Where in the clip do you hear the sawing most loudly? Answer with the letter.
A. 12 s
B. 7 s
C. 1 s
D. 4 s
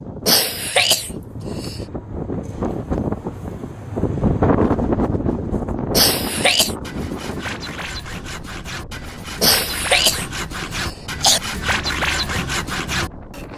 A.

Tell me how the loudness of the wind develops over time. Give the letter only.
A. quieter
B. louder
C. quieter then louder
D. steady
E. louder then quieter
E.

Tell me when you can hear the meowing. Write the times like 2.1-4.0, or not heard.
not heard.